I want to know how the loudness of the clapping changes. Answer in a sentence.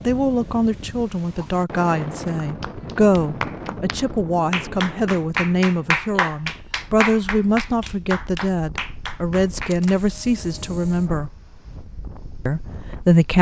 The loudness of the clapping goes up, then down.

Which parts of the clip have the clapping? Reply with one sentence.
You can hear the clapping from 2.4 to 10.0 s.